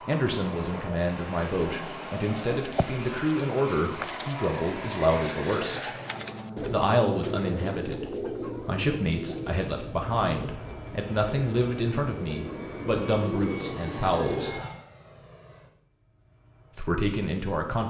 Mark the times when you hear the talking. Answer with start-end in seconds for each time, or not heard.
0.1-5.9, 6.7-14.6, 16.8-17.8.